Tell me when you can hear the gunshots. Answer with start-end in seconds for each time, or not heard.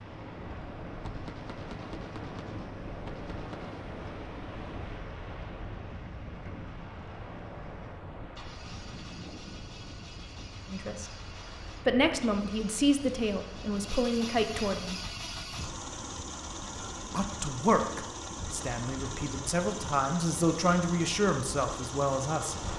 1.0-3.9.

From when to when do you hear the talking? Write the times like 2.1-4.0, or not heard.
10.7-11.1, 11.8-14.9, 17.1-22.6.